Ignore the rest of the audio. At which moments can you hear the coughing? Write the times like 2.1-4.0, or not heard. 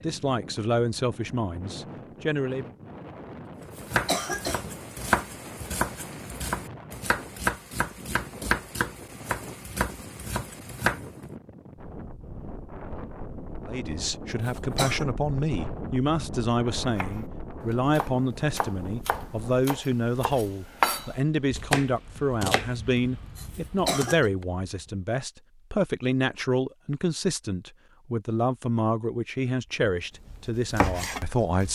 3.6-5.2, 14.3-15.1, 23.4-24.3.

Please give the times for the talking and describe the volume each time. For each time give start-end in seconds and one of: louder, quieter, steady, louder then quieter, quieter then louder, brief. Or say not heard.
0.0-2.7 brief
13.7-31.7 steady.